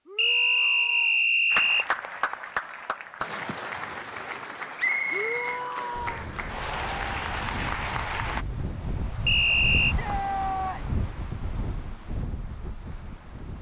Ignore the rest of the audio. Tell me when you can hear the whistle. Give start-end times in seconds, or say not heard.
0.1-1.9, 4.8-5.6, 9.2-9.9.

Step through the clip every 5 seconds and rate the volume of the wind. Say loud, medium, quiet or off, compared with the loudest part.
off, loud, loud.